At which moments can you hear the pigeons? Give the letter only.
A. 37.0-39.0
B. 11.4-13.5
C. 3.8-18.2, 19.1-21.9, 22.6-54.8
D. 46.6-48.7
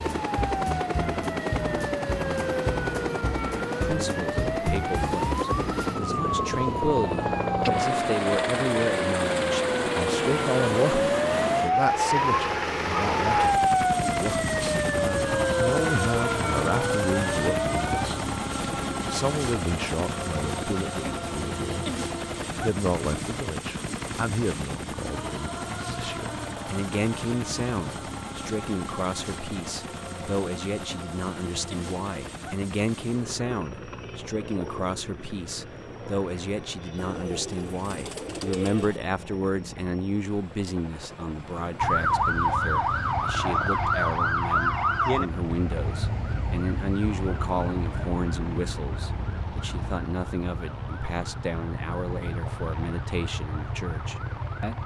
A.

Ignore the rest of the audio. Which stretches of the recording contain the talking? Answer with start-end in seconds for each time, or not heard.
3.8-18.2, 19.1-21.9, 22.6-54.8.